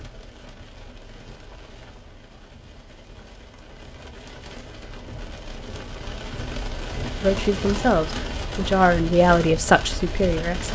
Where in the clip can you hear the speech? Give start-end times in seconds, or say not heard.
7.2-10.6.